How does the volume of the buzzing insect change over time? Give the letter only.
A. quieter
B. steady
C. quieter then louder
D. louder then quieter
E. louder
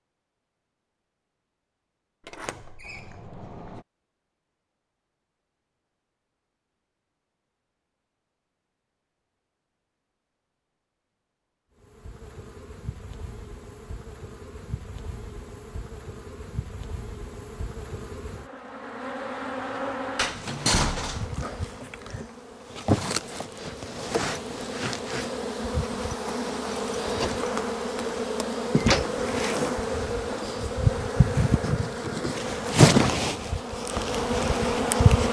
E.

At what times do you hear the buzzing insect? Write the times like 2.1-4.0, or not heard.
11.8-35.2.